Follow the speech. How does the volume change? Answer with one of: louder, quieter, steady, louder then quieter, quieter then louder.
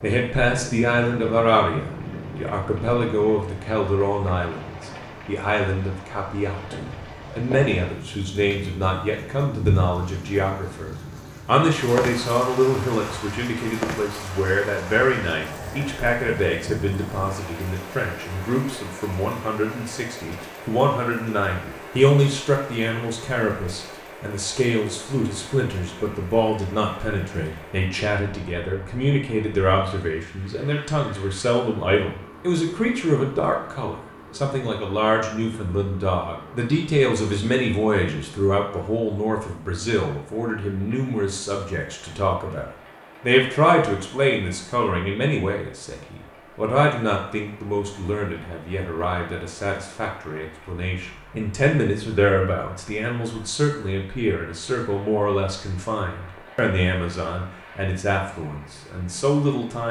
steady.